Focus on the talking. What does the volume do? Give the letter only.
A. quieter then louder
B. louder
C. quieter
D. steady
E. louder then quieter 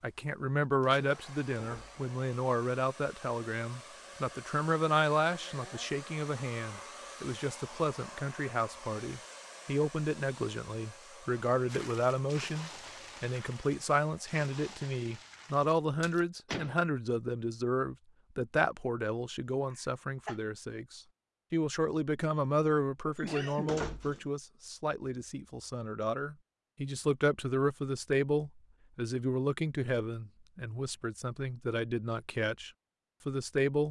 D.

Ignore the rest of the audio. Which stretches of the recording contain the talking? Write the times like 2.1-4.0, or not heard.
0.0-33.8.